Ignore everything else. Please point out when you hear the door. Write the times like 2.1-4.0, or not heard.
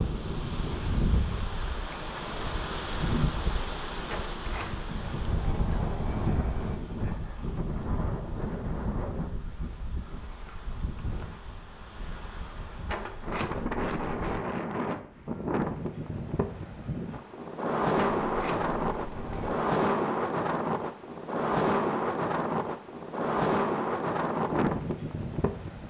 4.0-6.8, 12.8-14.4, 17.9-19.6.